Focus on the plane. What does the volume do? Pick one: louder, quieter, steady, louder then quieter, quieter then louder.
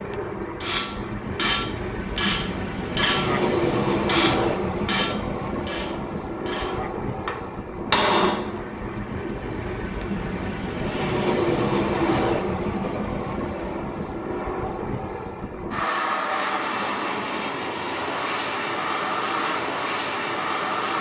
steady.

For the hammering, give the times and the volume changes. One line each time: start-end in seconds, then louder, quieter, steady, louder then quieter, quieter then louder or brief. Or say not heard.
0.6-8.8 quieter then louder.